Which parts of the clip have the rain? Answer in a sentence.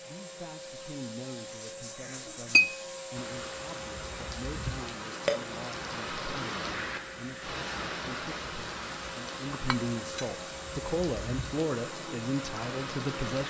The rain can be heard from 3.1 to 13.4 s.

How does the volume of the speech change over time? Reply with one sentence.
The volume of the speech goes up.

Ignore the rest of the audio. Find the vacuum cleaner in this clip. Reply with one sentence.
The vacuum cleaner can be heard from 0.0 to 13.4 s.